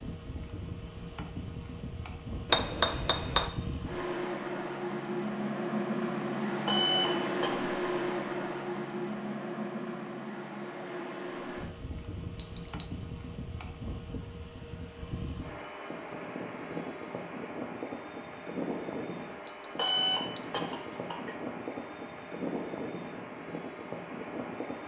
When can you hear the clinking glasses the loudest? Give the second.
3 s.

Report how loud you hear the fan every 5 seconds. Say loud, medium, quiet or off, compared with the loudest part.
medium, loud, medium, medium, medium.